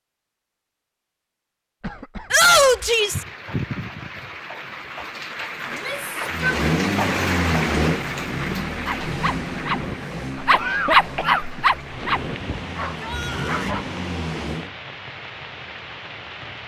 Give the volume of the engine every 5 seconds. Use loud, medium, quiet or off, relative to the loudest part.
off, loud, medium, off.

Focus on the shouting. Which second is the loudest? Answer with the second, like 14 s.
3 s.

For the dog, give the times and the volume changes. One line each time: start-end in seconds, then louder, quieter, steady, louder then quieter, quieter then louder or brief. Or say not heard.
8.8-13.8 louder then quieter.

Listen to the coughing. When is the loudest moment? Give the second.
11 s.